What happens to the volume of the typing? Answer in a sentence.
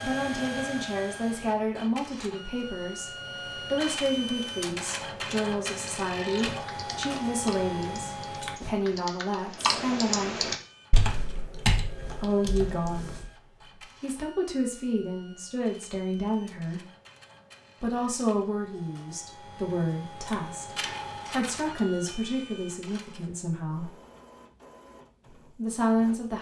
The loudness of the typing goes up.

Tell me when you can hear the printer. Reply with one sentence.
The printer can be heard from 0.0 to 8.6 s and from 10.6 to 26.3 s.